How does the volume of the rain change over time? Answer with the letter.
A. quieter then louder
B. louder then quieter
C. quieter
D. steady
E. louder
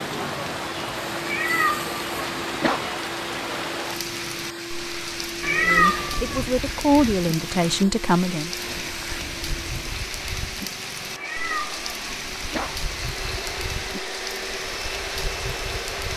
D.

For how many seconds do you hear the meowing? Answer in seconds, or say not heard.
4 s.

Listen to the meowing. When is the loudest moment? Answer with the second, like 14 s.
6 s.